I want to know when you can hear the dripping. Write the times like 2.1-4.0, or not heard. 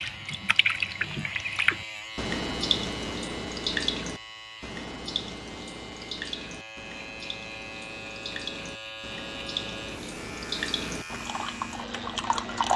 0.0-12.7.